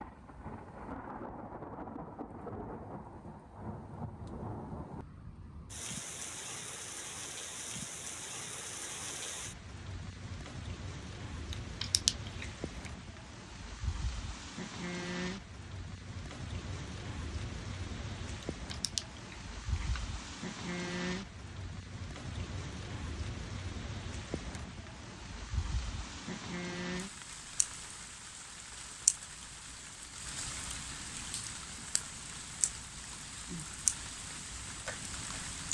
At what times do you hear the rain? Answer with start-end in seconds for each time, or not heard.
0.0-35.7.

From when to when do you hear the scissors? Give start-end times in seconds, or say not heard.
11.5-12.9, 18.4-20.0.